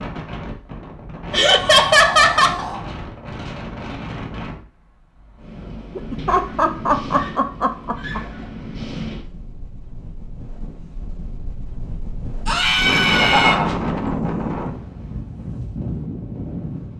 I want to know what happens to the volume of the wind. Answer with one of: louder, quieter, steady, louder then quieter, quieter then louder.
louder.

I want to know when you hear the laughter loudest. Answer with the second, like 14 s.
2 s.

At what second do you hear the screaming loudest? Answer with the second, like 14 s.
13 s.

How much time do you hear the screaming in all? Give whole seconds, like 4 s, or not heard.
4 s.